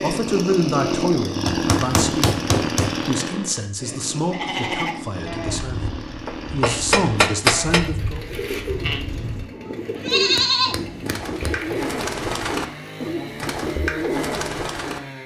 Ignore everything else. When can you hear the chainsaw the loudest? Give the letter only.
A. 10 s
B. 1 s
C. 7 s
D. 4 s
B.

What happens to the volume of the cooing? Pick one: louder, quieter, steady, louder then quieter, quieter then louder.
louder.